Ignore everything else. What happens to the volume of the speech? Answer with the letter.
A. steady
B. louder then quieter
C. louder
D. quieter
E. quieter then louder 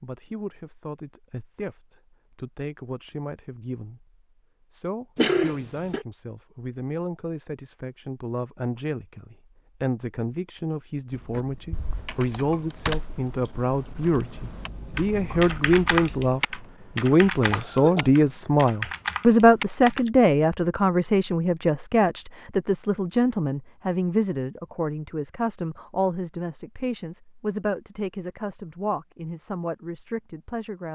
B.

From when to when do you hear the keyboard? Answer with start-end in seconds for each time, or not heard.
11.3-20.1.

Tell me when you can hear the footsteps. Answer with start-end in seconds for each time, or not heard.
not heard.